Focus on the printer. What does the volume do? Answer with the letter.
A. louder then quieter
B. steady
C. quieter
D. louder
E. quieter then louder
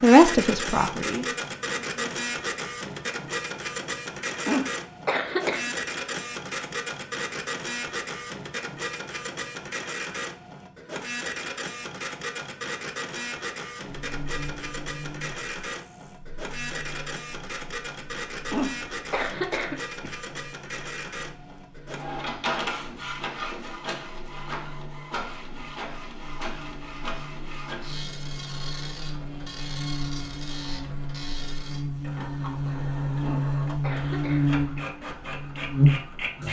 C.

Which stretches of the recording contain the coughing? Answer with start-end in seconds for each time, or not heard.
4.5-5.7, 18.5-20.1, 33.2-34.8.